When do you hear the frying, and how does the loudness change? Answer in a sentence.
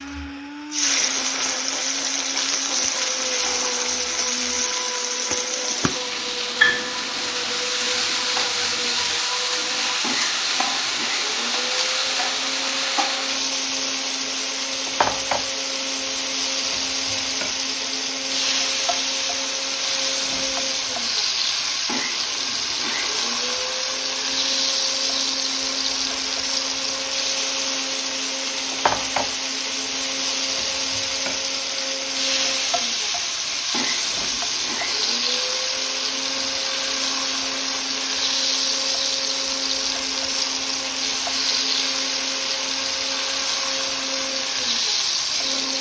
The frying can be heard from 0.0 to 45.7 s, at a steady volume.